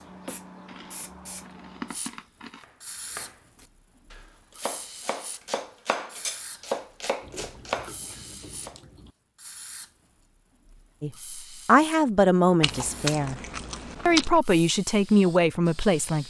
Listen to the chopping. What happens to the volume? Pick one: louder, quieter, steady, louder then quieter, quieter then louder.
louder.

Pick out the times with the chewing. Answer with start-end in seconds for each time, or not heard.
0.7-2.6, 7.2-9.1, 12.6-14.4.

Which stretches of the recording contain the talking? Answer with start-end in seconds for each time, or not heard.
11.0-13.4, 14.1-16.2.